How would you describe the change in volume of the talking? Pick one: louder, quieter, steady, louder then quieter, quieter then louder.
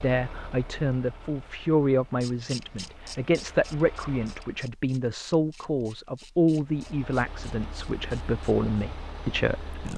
steady.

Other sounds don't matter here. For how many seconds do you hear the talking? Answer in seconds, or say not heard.
10 s.